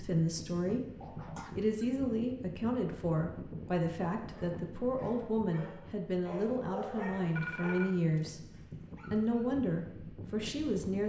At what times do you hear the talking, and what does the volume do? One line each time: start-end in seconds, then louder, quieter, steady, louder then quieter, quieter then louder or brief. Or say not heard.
0.0-8.4 steady
9.1-11.0 brief.